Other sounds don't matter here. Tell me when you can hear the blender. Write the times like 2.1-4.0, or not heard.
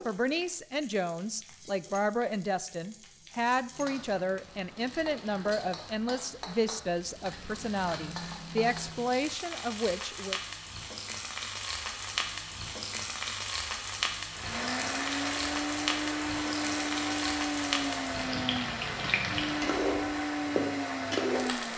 14.3-21.7.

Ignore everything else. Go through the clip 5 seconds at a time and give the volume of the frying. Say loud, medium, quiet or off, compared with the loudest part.
quiet, medium, loud, loud, loud.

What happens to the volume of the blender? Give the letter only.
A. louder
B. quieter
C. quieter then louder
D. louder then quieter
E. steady
E.